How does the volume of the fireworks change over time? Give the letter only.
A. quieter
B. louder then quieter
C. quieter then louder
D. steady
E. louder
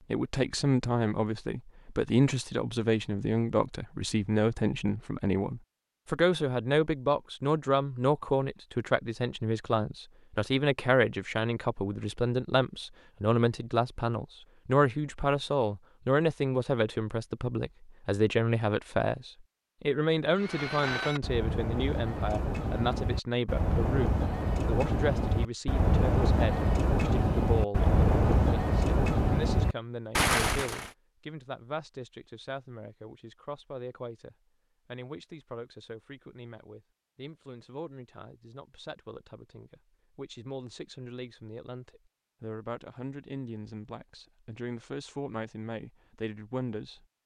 E.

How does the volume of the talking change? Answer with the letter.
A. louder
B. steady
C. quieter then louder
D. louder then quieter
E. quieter
E.